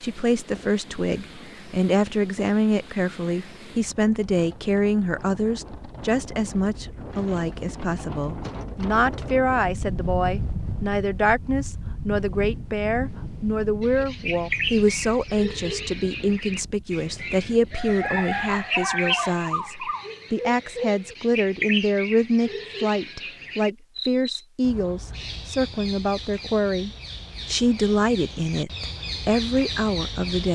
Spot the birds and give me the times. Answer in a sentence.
The birds can be heard from 13.8 to 30.4 s.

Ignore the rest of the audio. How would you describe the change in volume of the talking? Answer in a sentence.
The volume of the talking stays about the same.